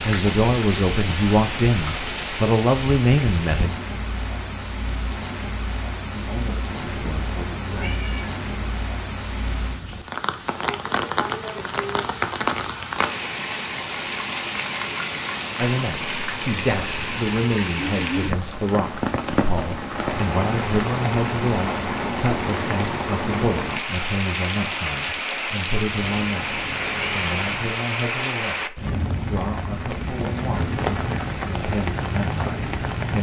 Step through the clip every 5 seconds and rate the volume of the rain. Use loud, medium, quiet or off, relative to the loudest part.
loud, medium, loud, loud, loud, loud, loud.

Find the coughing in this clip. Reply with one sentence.
The coughing can't be heard in this clip.